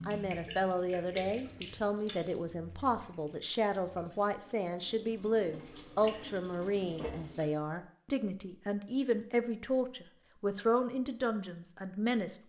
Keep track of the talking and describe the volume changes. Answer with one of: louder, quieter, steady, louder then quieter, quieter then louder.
steady.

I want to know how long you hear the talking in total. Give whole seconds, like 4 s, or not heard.
12 s.